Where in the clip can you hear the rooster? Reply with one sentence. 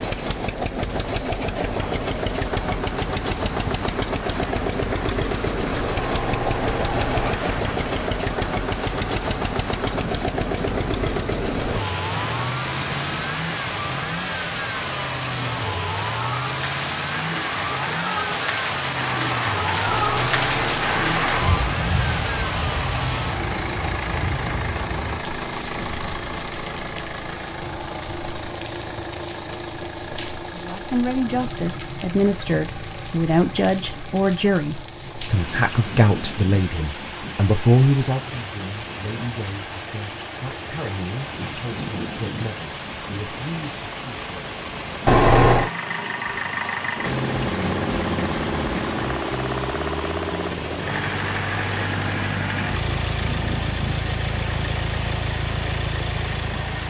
The rooster can't be heard in this clip.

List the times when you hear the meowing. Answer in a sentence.
You can hear the meowing from 6.0 to 7.4 s, from 19.9 to 21.7 s and from 45.0 to 45.7 s.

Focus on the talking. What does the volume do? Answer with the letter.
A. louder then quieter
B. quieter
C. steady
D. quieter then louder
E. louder
B.